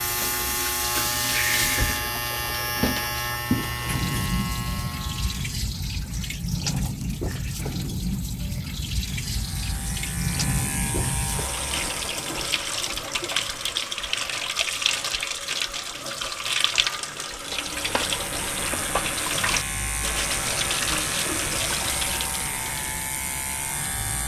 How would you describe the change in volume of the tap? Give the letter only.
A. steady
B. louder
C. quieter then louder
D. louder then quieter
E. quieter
A.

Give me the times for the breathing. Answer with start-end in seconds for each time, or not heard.
1.3-2.1.